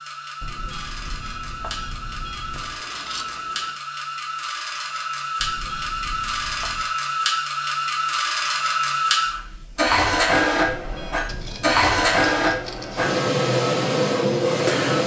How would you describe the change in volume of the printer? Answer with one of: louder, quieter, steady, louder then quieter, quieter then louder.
louder.